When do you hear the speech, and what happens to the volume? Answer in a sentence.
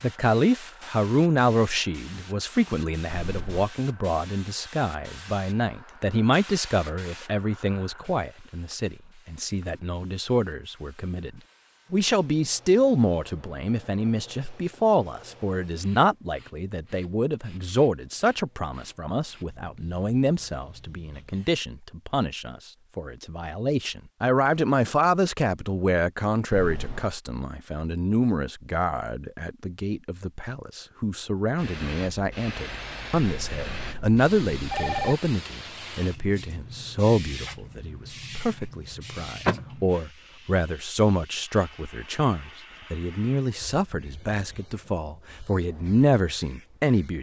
The speech can be heard from 0.0 to 47.1 s, at a steady volume.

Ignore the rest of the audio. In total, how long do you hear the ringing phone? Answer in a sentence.
You can hear the ringing phone for 3 seconds altogether.